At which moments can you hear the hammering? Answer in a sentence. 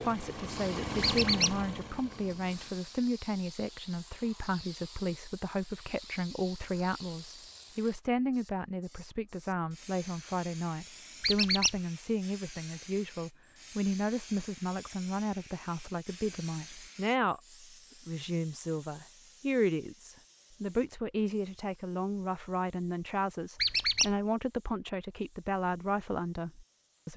You can't hear the hammering here.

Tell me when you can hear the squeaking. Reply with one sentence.
You can hear the squeaking from 1.0 to 1.6 s, from 11.2 to 11.8 s and from 23.6 to 24.1 s.